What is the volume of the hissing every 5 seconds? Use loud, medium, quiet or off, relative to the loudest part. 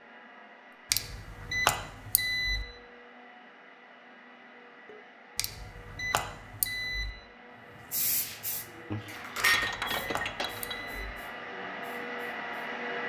off, loud, quiet.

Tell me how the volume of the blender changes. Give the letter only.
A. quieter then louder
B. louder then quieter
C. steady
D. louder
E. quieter
D.